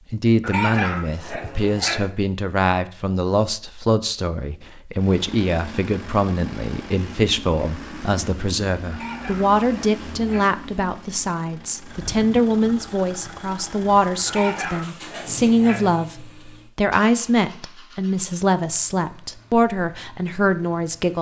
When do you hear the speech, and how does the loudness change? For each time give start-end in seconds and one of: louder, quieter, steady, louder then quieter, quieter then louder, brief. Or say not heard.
0.1-21.1 steady.